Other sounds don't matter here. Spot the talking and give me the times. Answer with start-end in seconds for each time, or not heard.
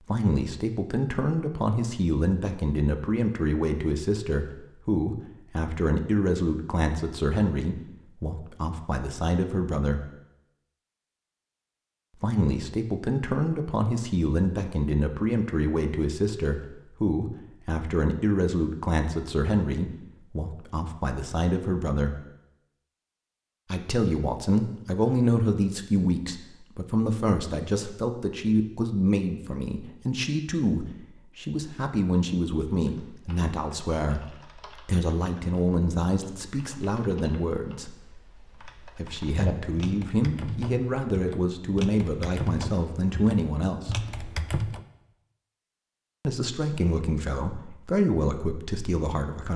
0.1-10.1, 12.2-22.2, 23.7-37.9, 39.0-44.0, 46.2-49.5.